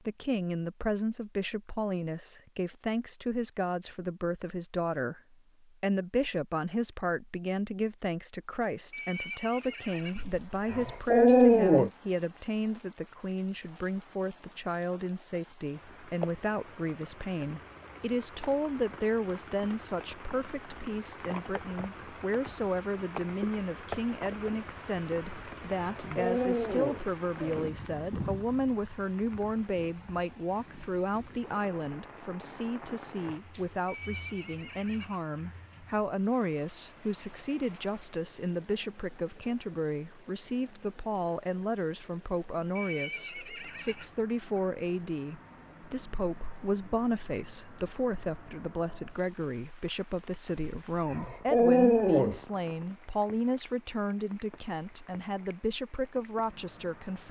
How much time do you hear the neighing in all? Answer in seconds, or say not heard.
4 s.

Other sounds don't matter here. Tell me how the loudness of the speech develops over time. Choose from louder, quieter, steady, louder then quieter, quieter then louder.
steady.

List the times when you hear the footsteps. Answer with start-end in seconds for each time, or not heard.
not heard.